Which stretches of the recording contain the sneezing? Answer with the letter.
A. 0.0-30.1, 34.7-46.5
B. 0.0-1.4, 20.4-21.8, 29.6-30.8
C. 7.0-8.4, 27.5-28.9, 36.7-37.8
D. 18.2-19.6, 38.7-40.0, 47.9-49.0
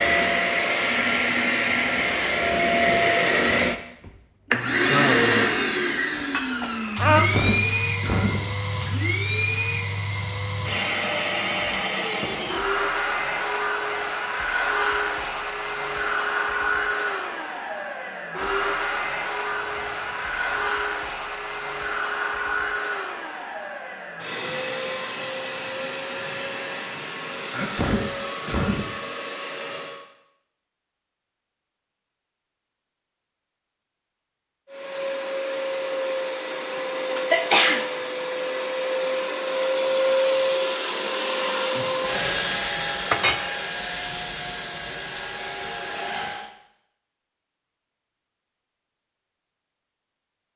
C.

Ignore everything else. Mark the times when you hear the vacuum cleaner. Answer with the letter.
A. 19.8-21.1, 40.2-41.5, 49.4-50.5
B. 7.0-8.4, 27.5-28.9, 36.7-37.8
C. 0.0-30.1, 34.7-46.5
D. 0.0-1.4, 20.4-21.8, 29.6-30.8
C.